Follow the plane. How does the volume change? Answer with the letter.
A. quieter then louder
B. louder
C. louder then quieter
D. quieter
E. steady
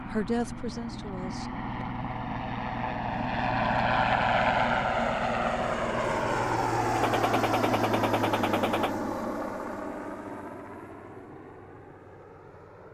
C.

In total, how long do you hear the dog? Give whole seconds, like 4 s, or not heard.
not heard.